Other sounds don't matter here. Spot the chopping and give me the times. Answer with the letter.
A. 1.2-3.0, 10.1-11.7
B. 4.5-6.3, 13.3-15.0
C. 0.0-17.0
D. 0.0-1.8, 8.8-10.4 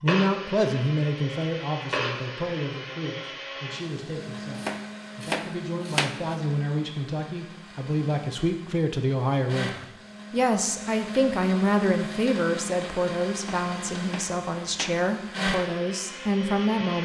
B.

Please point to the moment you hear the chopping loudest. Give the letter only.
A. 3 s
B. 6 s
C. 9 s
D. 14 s
B.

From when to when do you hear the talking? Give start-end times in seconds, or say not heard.
0.0-17.0.